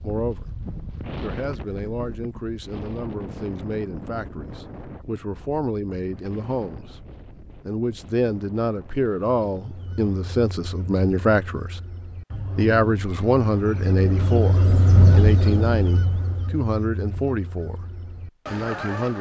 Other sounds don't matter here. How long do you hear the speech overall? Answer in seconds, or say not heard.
17 s.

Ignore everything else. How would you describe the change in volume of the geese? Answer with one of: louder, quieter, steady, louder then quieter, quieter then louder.
louder then quieter.